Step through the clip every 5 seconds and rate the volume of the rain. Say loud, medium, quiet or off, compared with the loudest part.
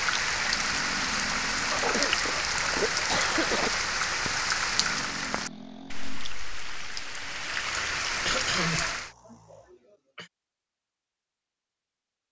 loud, medium, off.